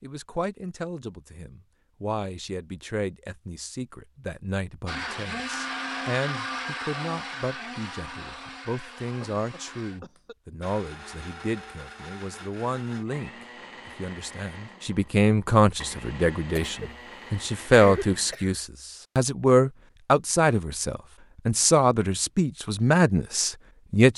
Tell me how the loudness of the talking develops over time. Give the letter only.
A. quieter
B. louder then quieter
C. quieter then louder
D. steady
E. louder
E.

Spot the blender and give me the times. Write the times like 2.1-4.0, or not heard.
4.8-18.4.